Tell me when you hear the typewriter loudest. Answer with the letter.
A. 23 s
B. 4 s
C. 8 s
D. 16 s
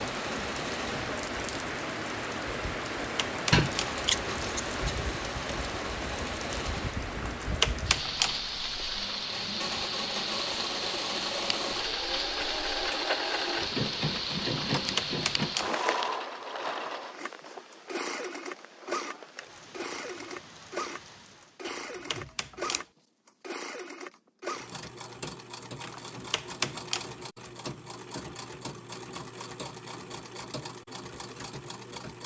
C.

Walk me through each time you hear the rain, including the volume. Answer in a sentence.
You can hear the rain from 0.0 to 21.6 s, getting quieter.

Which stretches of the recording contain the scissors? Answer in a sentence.
You can hear the scissors from 3.5 to 5.0 s, from 14.7 to 15.1 s and from 21.6 to 22.8 s.